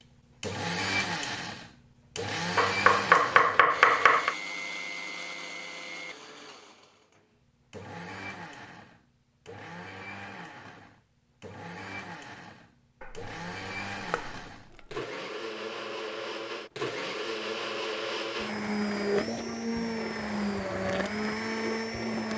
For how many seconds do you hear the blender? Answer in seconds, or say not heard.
22 s.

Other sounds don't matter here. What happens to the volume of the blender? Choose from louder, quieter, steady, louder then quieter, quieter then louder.
quieter then louder.